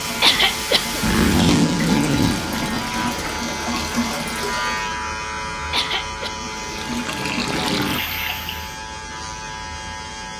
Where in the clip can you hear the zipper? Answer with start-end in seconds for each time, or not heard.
1.0-3.0.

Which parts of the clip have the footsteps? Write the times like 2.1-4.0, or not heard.
not heard.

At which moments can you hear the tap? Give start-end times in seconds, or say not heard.
0.0-5.0, 6.3-8.8.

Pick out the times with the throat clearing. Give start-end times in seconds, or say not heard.
0.2-1.0, 5.7-6.3.